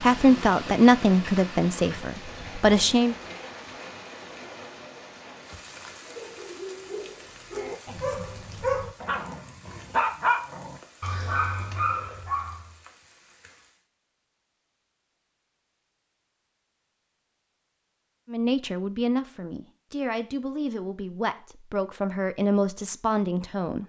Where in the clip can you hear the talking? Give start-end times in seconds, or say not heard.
0.0-3.1, 18.3-23.8.